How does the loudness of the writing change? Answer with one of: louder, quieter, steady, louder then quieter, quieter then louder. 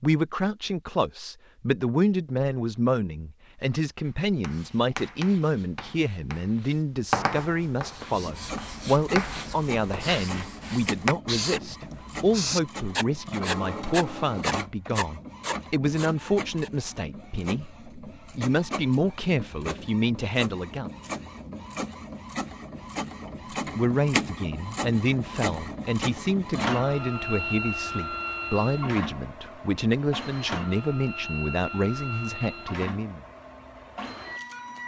louder.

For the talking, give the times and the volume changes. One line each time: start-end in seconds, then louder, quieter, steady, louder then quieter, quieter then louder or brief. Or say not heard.
0.0-20.9 steady
23.2-33.2 steady.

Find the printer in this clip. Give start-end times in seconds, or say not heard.
8.0-34.8.